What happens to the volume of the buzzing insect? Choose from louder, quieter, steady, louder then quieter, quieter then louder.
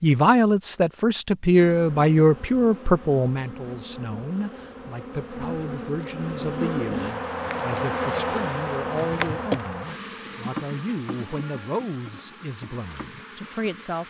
louder then quieter.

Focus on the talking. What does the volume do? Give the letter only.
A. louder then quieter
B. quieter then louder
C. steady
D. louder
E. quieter
E.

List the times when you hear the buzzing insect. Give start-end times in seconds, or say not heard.
1.5-14.0.